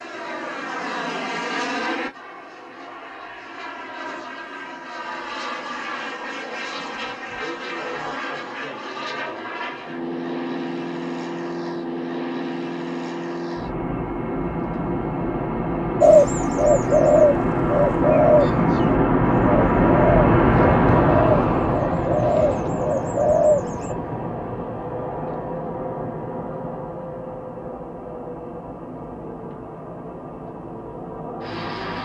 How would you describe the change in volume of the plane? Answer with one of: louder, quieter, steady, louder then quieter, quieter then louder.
louder then quieter.